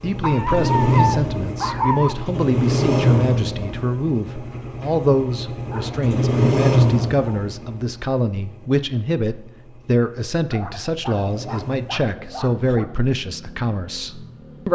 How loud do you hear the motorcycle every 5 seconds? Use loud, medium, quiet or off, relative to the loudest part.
loud, loud, quiet.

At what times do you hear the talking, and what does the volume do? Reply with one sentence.
You can hear the talking from 0.0 to 14.7 s, at a steady volume.